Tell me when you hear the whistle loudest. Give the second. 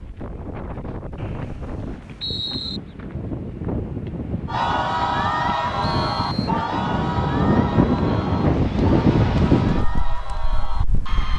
2 s.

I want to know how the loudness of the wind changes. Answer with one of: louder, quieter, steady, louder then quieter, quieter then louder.
louder.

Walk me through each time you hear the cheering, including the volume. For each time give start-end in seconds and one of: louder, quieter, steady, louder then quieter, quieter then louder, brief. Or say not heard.
4.5-11.3 quieter.